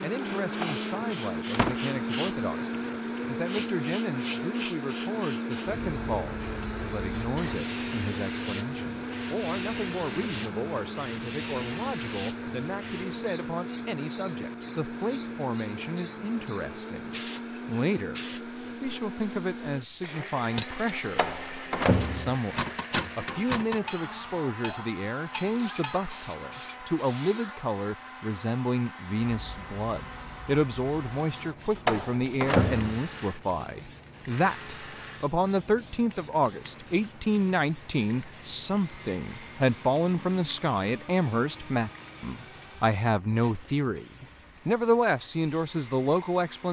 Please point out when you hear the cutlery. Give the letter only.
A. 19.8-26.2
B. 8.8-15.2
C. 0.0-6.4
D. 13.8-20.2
A.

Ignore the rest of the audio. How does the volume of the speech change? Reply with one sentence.
The loudness of the speech goes up.